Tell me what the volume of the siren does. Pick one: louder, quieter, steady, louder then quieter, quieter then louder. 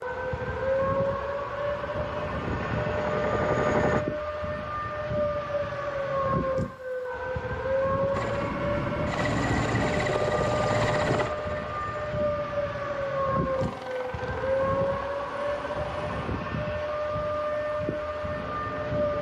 steady.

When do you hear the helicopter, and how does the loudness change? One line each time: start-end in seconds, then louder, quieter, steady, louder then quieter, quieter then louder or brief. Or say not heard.
0.0-4.0 louder
8.1-19.1 quieter.